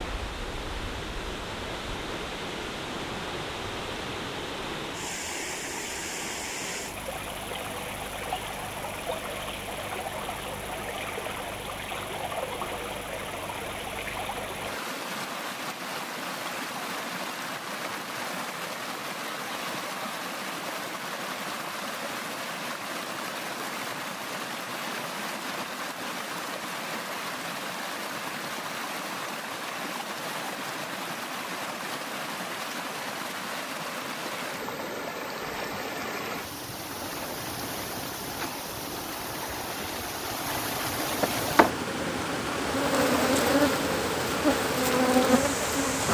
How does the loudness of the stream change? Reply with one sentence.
The loudness of the stream stays about the same.